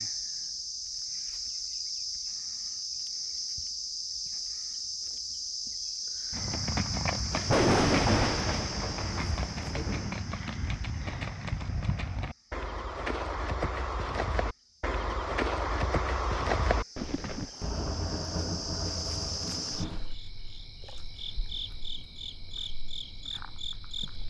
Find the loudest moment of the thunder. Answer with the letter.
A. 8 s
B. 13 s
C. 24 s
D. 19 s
A.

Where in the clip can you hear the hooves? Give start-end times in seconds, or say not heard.
6.3-17.5.